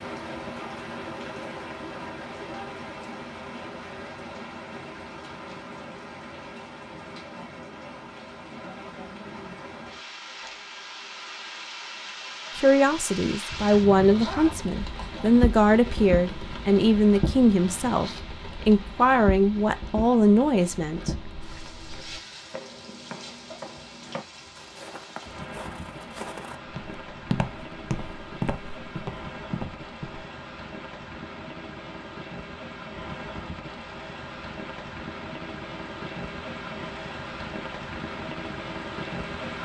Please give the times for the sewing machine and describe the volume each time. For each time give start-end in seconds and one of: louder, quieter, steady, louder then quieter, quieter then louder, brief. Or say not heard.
not heard.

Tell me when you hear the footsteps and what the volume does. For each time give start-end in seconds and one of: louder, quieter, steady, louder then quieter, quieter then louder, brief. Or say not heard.
21.0-30.2 louder.